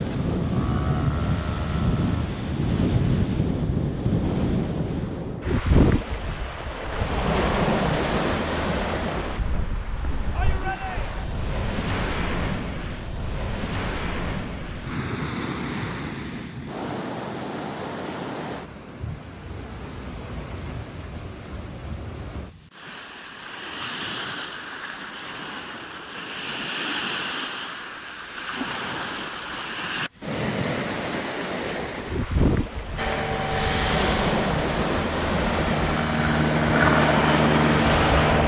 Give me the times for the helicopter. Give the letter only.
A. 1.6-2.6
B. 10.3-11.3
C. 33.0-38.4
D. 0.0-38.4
C.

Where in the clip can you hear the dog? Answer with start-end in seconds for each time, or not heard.
not heard.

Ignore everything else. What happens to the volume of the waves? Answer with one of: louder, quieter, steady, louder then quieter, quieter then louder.
quieter then louder.